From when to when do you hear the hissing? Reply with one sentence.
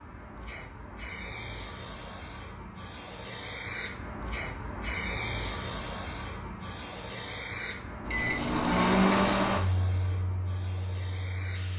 The hissing can be heard from 0.0 to 11.7 s.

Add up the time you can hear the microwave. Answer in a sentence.
The microwave can be heard for 4 seconds in total.